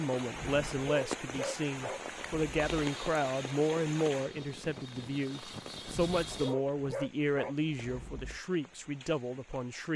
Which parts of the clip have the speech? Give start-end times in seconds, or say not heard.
0.0-9.9.